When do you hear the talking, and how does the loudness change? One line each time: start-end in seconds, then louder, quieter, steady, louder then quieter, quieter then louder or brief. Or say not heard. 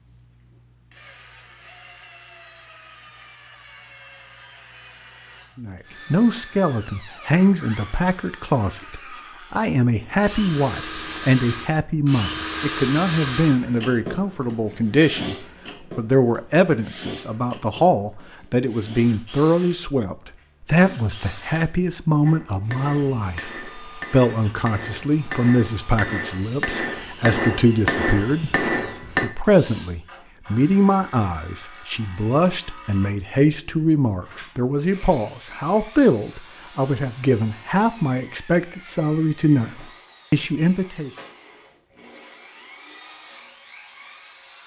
5.5-41.1 steady.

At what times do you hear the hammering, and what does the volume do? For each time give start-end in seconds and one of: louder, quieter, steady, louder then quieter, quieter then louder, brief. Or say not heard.
22.2-29.3 louder.